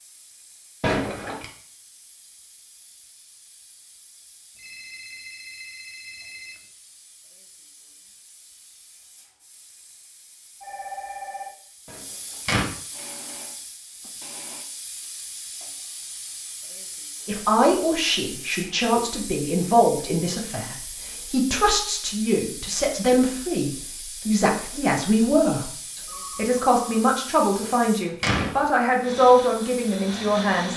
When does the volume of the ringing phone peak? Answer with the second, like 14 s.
11 s.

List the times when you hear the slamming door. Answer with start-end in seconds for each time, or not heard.
0.8-1.4, 11.8-12.7, 27.6-28.6.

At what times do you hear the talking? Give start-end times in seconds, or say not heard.
17.2-30.7.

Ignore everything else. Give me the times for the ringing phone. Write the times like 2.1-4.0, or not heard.
4.5-6.5, 10.6-11.6, 25.8-27.1.